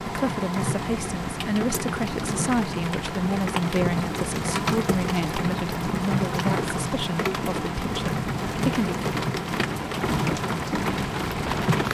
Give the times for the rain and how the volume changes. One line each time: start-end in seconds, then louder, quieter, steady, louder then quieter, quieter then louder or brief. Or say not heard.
0.0-11.9 steady.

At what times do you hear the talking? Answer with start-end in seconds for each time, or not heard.
0.0-8.9.